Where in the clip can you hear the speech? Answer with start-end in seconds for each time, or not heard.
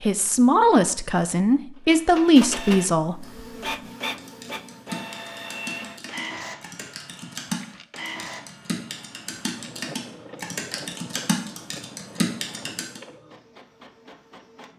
0.0-3.2.